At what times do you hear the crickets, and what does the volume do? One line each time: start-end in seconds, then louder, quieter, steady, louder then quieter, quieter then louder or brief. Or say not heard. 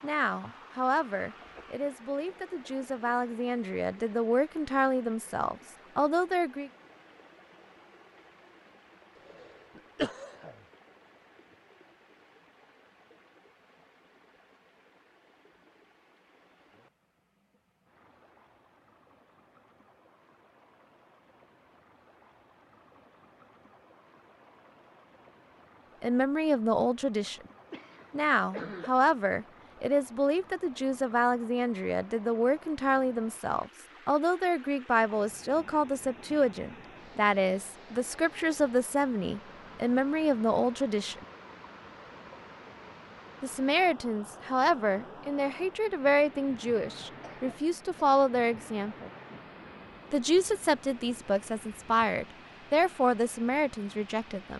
not heard.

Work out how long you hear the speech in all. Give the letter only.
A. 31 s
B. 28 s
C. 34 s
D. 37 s
A.